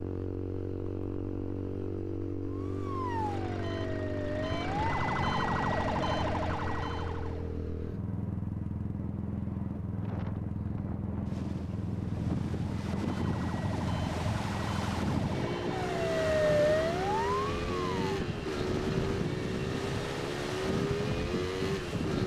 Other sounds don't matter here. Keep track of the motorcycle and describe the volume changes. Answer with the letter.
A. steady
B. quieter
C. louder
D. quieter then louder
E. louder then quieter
A.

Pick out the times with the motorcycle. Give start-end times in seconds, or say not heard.
0.0-22.2.